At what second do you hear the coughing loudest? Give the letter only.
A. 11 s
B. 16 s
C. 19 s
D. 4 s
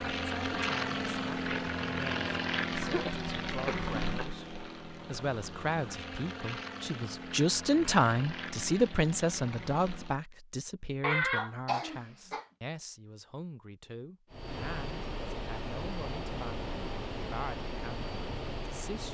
A.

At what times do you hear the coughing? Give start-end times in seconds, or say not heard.
2.8-4.3, 11.0-12.4.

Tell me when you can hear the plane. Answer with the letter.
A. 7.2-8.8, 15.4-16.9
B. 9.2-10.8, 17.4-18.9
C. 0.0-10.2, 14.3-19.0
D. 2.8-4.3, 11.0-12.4
C.